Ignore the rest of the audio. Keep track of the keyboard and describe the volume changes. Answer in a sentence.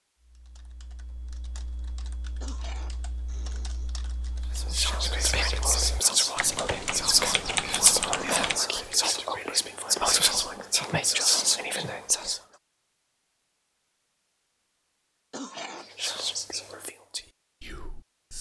The loudness of the keyboard goes up.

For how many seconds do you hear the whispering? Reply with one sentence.
The whispering can be heard for 10 seconds in total.